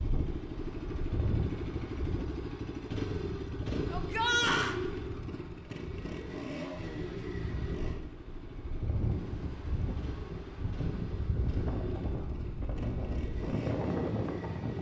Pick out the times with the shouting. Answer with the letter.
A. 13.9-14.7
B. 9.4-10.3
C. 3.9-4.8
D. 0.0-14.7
C.